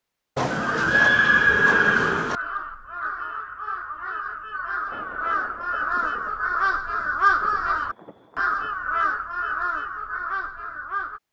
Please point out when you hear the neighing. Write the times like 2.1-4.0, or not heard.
0.3-2.4.